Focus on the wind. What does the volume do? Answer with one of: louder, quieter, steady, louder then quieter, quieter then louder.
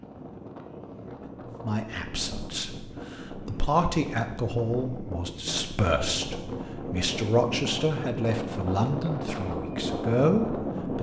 louder.